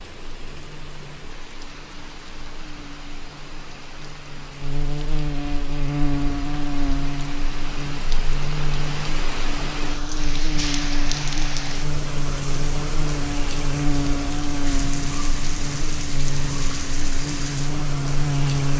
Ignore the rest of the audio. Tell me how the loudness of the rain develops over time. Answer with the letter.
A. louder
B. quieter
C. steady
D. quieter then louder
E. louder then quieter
A.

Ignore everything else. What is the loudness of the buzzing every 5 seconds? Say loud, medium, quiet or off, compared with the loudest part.
quiet, loud, loud, loud.